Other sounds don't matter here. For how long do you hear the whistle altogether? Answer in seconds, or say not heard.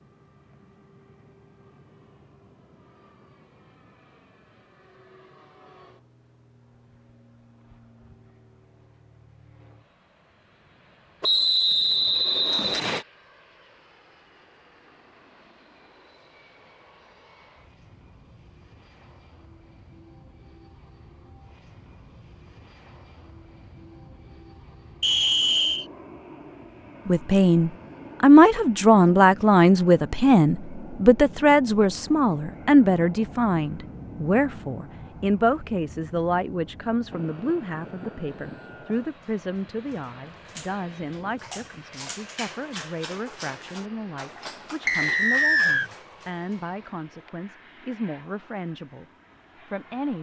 4 s.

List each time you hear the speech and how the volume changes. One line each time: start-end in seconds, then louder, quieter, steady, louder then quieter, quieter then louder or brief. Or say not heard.
27.1-49.0 quieter
49.6-50.1 brief.